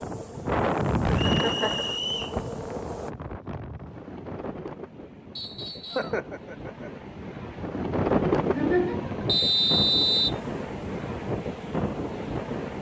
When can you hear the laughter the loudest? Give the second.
9 s.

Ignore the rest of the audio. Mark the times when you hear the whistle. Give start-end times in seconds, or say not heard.
1.1-2.4, 5.3-6.2, 9.2-10.3.